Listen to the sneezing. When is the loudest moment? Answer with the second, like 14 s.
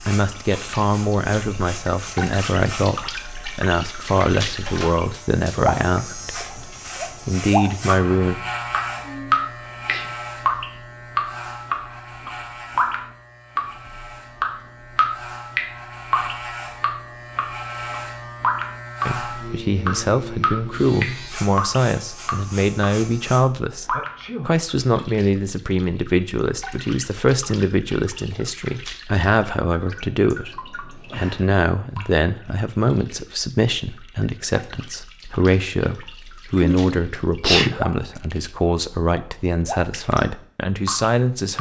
38 s.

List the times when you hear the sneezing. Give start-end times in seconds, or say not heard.
9.0-10.1, 23.9-24.6, 36.6-38.5.